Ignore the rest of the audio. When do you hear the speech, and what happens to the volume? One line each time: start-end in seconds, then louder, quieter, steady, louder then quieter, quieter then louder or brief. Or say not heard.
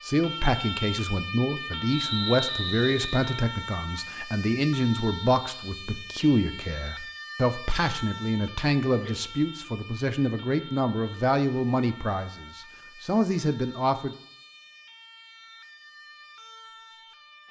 0.1-14.2 steady.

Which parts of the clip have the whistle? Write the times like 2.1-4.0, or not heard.
1.9-3.4.